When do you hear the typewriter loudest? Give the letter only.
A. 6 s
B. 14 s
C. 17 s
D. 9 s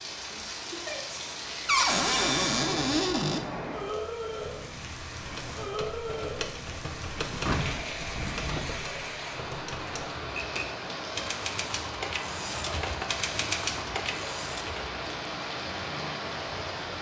B.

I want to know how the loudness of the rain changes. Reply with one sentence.
The loudness of the rain stays about the same.